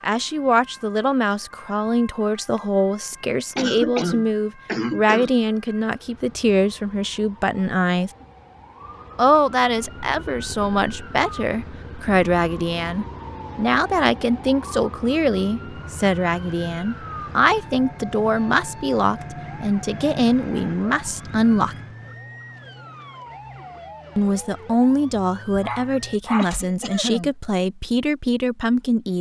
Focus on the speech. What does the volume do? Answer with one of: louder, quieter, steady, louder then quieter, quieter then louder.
steady.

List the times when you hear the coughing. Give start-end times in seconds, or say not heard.
3.5-5.3, 26.4-27.3.